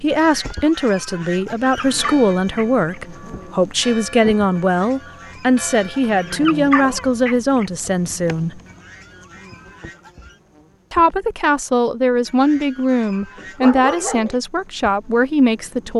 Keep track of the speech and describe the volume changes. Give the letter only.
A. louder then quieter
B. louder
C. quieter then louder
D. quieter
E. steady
E.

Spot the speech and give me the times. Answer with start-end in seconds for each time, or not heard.
0.0-8.6, 10.9-15.9.